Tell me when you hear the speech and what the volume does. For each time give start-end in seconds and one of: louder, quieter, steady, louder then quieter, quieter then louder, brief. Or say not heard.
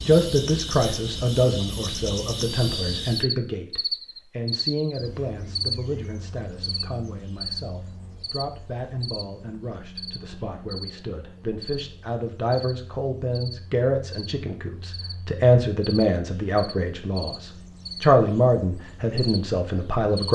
0.1-20.3 quieter then louder.